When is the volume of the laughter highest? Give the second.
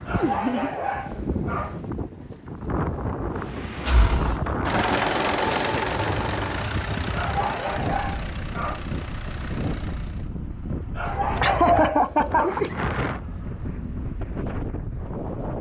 12 s.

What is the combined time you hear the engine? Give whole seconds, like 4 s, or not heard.
7 s.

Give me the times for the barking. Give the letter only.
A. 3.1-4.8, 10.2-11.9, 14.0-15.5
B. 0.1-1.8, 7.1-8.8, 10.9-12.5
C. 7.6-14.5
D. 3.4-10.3
B.